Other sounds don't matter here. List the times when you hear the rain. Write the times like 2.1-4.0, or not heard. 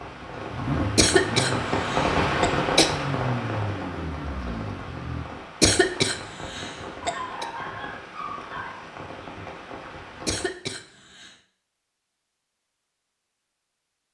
0.0-10.5.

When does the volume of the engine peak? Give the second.
1 s.